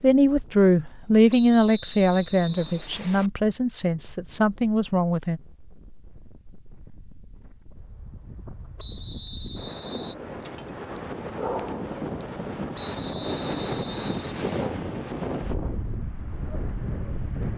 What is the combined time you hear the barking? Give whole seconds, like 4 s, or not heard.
2 s.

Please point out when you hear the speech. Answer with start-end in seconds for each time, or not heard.
0.0-5.4.